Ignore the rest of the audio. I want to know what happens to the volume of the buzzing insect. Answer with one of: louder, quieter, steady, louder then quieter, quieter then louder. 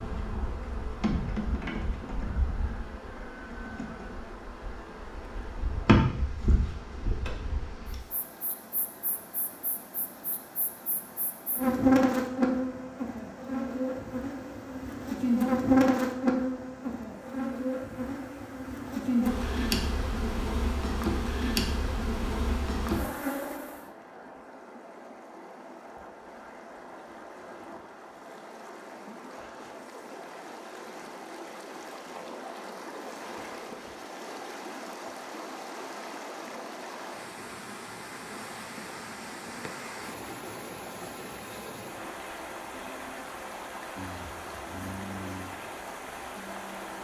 louder.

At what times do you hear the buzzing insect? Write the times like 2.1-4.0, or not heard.
0.0-23.9.